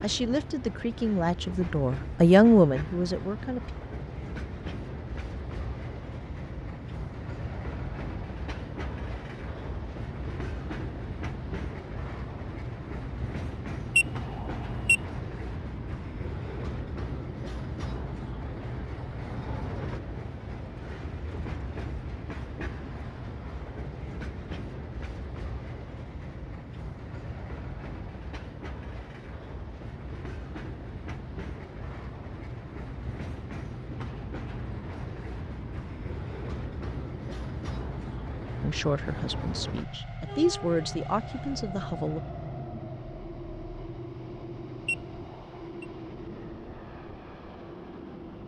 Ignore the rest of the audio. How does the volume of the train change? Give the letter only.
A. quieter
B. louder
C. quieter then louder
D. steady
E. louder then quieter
D.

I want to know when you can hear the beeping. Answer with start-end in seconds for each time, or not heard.
13.9-15.0, 44.9-45.9.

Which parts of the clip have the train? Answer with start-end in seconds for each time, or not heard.
0.0-48.4.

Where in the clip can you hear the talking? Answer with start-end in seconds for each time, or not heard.
0.0-3.7, 38.6-42.2.